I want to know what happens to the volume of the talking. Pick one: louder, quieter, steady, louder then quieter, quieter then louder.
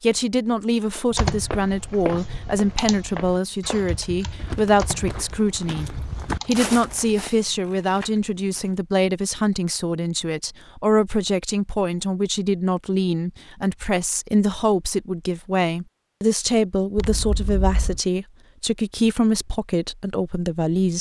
steady.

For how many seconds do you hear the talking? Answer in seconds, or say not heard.
21 s.